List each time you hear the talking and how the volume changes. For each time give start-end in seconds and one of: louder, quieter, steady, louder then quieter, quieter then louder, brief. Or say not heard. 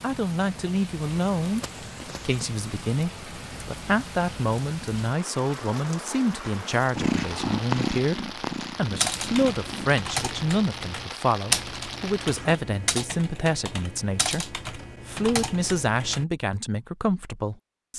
0.0-1.6 brief
2.2-14.4 steady
15.1-17.9 brief.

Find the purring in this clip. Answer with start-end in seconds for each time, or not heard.
7.0-10.0.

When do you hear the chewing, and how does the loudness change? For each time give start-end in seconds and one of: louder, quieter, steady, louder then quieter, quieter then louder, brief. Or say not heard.
not heard.